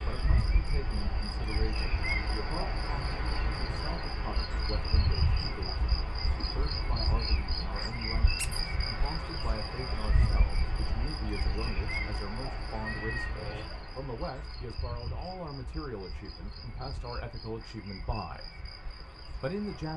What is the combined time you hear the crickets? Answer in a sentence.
You can hear the crickets for 20 seconds altogether.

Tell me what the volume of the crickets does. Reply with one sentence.
The volume of the crickets goes down.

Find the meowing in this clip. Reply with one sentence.
You can hear the meowing from 12.8 to 13.7 s.